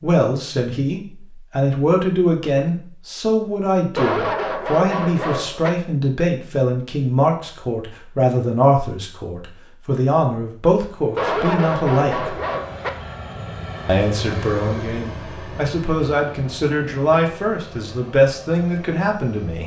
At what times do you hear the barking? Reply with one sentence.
You can hear the barking from 4.0 to 5.7 s and from 11.2 to 12.9 s.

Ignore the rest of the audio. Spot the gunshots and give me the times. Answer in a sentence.
You can't hear the gunshots here.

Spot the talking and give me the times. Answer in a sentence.
The talking can be heard from 0.0 to 12.3 s and from 13.8 to 19.6 s.